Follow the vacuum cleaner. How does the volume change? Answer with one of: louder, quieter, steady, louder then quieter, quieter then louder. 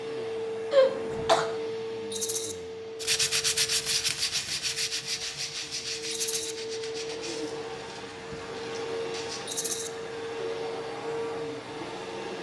quieter then louder.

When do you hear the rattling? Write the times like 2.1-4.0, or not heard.
2.1-2.5, 6.1-6.5, 9.4-9.9.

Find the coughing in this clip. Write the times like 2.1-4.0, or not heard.
0.7-1.4.